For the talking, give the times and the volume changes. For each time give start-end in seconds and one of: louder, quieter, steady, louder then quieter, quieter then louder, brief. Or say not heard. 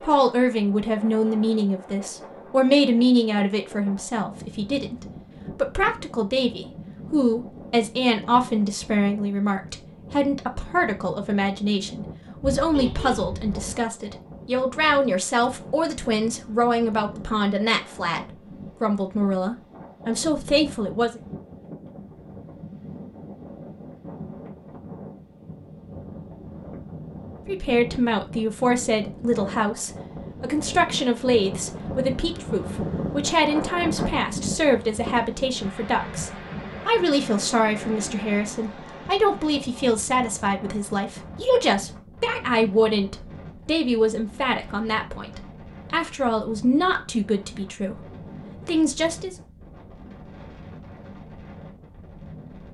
0.0-21.2 steady
27.4-49.4 steady.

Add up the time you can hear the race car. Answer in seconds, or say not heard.
not heard.